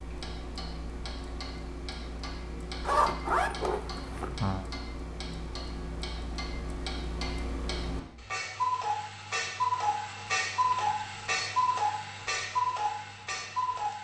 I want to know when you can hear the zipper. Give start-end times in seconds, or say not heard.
2.8-4.7.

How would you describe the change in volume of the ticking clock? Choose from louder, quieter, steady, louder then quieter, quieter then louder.
louder.